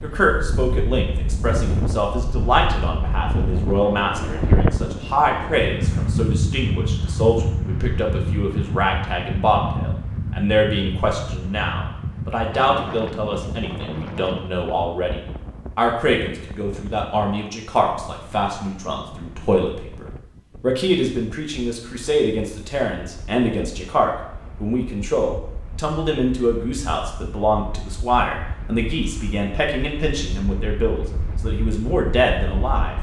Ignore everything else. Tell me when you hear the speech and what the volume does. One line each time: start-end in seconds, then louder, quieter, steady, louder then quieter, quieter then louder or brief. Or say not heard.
0.0-32.9 steady.